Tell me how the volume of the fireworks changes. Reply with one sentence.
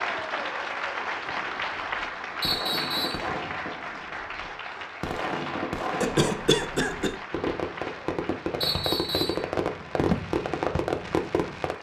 The loudness of the fireworks goes up.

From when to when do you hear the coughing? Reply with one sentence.
The coughing can be heard from 6.0 to 7.2 s.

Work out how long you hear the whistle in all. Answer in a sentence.
You can hear the whistle for 2 seconds altogether.